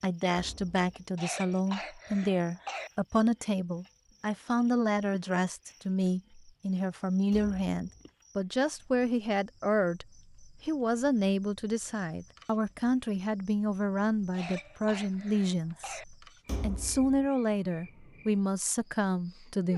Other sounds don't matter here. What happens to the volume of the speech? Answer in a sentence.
The volume of the speech stays about the same.